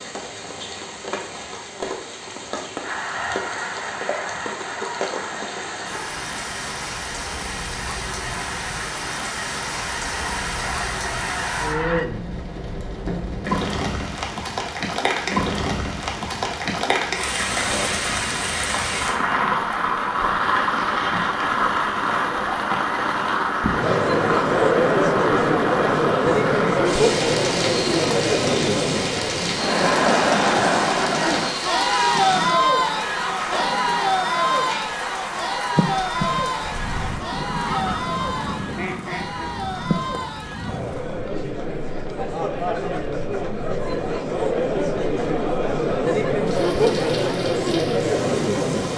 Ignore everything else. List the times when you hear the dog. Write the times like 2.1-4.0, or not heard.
not heard.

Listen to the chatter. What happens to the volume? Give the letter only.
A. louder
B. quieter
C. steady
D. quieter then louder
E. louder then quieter
D.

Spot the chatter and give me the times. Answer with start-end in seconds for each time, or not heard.
23.8-48.9.